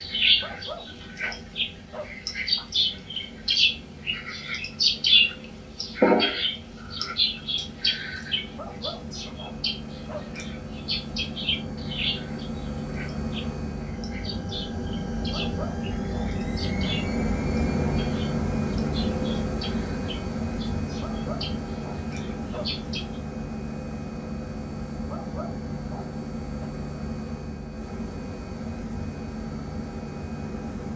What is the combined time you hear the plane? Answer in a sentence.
You can hear the plane for 31 seconds altogether.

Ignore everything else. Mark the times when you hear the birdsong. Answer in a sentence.
You can hear the birdsong from 0.0 to 23.2 s.